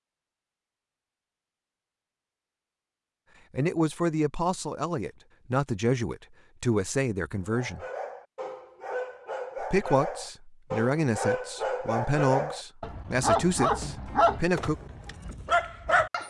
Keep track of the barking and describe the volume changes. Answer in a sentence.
The loudness of the barking goes up.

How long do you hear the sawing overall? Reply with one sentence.
You can't hear the sawing here.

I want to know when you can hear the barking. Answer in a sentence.
The barking can be heard from 7.4 to 16.2 s.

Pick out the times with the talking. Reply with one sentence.
The talking can be heard from 3.5 to 7.8 s and from 9.6 to 14.8 s.